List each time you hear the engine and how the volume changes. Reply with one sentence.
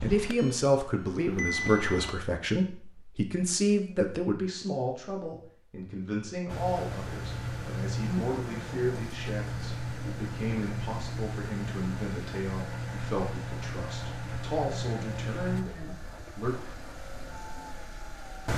The engine can be heard briefly from 0.0 to 2.1 s; and from 6.5 to 18.5 s, getting quieter.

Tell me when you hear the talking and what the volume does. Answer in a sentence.
The talking can be heard from 0.0 to 16.6 s, getting quieter.